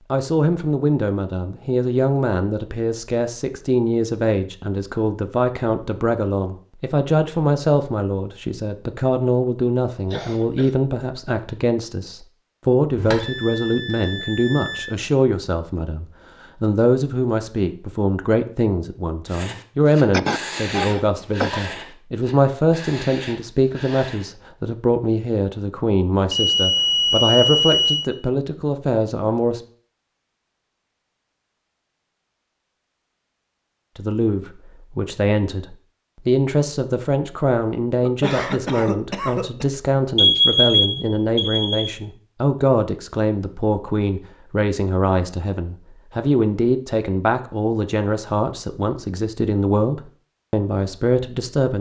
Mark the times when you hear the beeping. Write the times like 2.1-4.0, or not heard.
12.9-14.8, 26.3-28.1, 40.1-41.9.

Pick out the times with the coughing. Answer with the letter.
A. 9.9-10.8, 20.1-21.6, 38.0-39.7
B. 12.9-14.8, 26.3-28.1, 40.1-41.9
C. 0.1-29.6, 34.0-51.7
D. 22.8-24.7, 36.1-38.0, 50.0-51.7
A.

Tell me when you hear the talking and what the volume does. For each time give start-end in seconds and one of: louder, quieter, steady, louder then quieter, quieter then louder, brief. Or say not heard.
0.1-29.6 steady
34.0-51.7 steady.